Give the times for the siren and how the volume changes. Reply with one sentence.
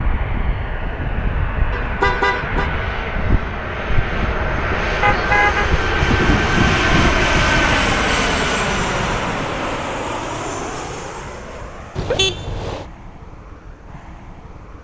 The siren can't be heard in this clip.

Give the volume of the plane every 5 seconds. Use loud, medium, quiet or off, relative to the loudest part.
medium, loud, quiet.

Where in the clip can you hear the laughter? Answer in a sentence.
The laughter can't be heard in this clip.